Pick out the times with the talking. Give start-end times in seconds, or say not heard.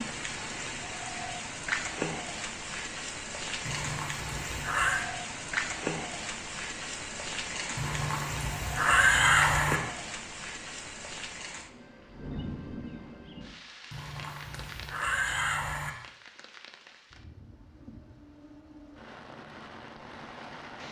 not heard.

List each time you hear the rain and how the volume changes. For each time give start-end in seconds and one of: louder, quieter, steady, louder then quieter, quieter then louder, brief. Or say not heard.
0.0-20.8 quieter.